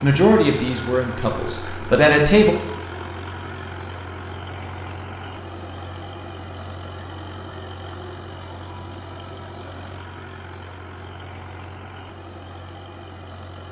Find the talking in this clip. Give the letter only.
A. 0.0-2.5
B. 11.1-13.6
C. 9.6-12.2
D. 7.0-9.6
A.